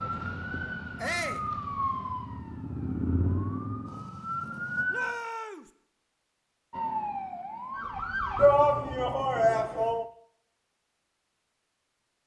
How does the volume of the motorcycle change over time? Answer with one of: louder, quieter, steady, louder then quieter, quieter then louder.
louder then quieter.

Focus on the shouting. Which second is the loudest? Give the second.
9 s.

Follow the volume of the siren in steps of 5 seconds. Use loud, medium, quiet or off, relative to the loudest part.
loud, loud, off.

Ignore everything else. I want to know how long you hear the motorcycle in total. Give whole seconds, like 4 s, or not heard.
5 s.